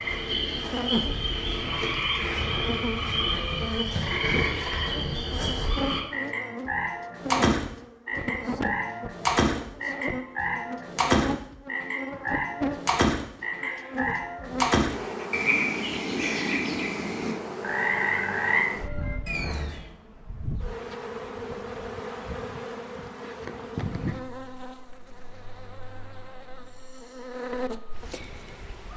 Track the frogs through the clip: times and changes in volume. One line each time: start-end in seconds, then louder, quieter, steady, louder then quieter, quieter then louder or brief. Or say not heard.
0.0-19.9 steady.